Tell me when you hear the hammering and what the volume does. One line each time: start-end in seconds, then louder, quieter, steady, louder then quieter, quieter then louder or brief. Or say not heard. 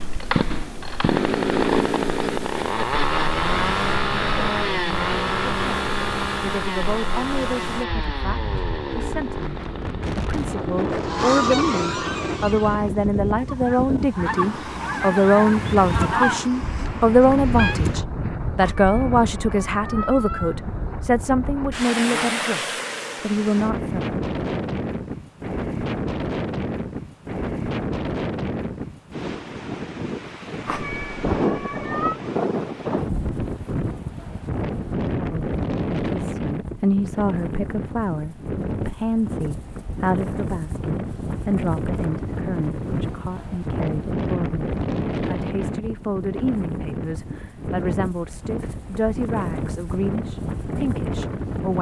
not heard.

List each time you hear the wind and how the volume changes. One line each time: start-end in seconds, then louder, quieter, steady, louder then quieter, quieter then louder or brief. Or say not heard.
0.0-51.7 louder.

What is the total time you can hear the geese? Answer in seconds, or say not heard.
7 s.